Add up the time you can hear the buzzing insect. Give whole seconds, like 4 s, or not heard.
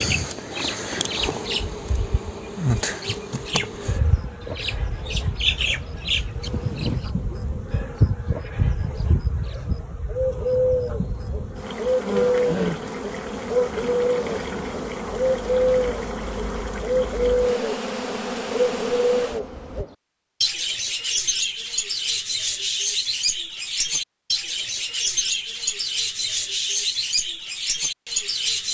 20 s.